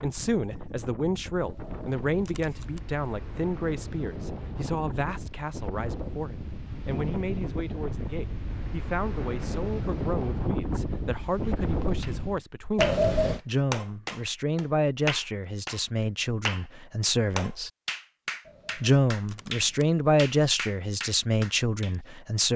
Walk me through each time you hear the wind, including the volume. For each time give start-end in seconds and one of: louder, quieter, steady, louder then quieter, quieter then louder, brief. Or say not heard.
0.0-12.4 louder.